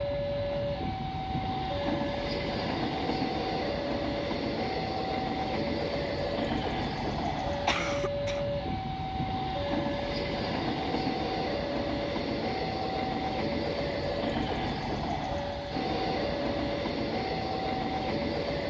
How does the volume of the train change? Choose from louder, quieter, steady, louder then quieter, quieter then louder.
steady.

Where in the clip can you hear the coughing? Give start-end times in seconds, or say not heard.
7.7-8.4.